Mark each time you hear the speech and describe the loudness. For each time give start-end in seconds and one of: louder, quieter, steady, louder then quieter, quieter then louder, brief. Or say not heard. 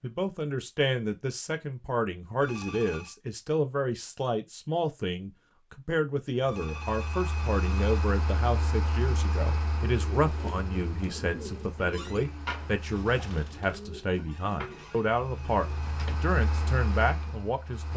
0.0-17.9 steady.